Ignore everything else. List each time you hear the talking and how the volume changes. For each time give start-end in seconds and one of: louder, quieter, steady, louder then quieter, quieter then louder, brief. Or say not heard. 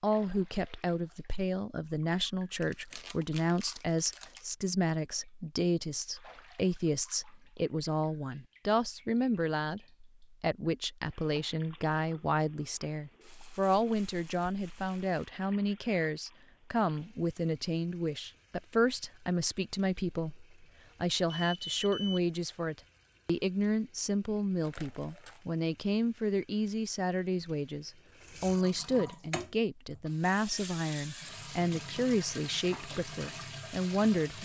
0.0-34.3 steady.